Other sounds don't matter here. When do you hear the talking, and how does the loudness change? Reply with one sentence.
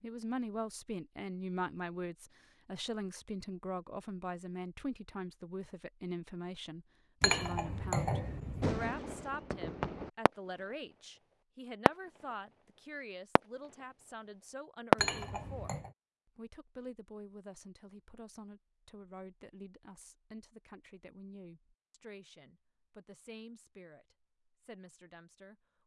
You can hear the talking from 0.0 to 15.8 s, getting quieter; and from 16.4 to 25.8 s, getting quieter.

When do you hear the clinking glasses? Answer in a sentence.
The clinking glasses can be heard from 7.2 to 8.8 s and from 14.9 to 15.9 s.